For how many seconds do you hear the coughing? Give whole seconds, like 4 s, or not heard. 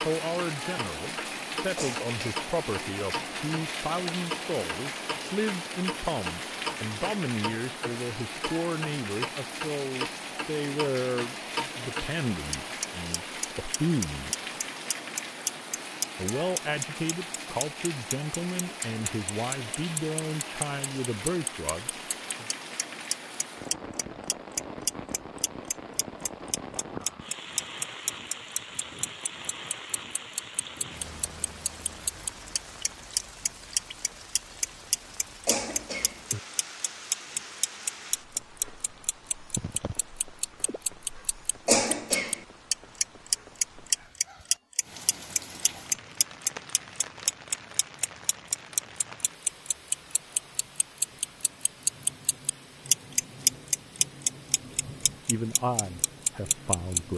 2 s.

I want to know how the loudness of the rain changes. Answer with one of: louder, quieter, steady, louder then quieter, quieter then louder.
quieter.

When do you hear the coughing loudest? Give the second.
42 s.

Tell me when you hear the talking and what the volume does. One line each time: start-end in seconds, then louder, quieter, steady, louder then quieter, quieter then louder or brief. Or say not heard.
0.0-14.4 steady
16.1-22.5 steady
55.2-57.1 brief.